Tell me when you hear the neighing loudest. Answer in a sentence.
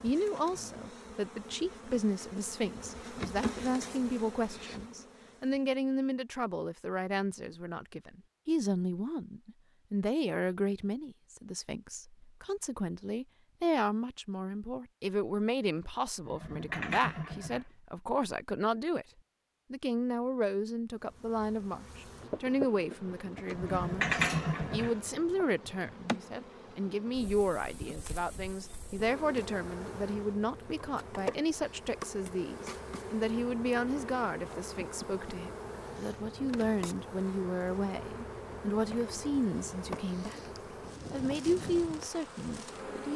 The volume of the neighing peaks at 24 seconds.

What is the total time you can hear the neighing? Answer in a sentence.
You can hear the neighing for 3 seconds altogether.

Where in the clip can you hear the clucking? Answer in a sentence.
The clucking can't be heard in this clip.